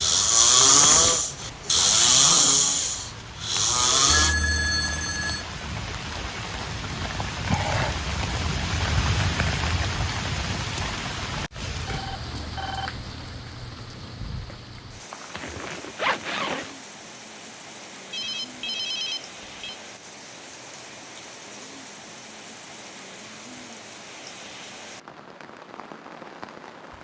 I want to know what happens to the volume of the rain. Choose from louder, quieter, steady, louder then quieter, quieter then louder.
louder then quieter.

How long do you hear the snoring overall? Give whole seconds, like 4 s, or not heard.
4 s.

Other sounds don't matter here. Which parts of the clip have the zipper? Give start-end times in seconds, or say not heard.
0.6-1.2, 15.1-16.8.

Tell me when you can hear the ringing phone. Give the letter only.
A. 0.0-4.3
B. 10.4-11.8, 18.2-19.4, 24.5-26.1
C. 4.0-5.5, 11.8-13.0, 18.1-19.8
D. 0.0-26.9
C.